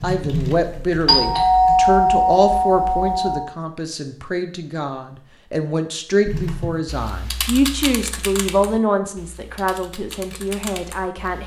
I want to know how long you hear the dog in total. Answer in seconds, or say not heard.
not heard.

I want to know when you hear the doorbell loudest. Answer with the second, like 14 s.
2 s.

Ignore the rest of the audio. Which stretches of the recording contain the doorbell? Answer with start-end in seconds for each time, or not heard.
1.1-3.5.